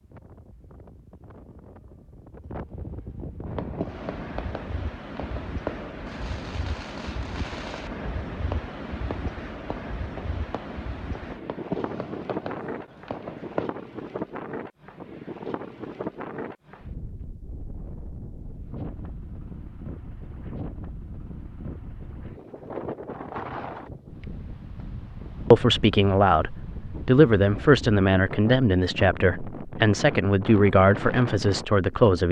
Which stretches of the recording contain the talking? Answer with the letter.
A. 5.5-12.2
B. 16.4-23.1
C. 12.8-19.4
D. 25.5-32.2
D.